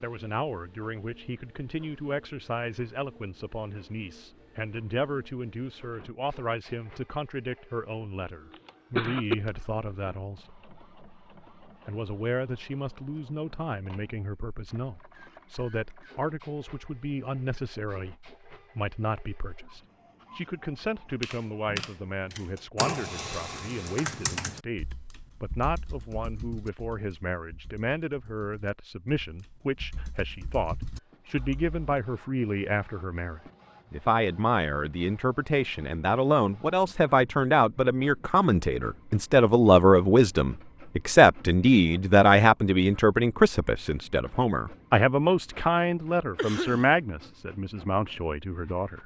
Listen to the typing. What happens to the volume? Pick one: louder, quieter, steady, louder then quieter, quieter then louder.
quieter then louder.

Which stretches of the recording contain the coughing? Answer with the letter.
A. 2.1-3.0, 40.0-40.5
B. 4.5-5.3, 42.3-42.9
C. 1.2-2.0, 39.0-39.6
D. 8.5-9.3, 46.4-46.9
D.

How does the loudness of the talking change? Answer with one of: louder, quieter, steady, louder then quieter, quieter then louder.
louder.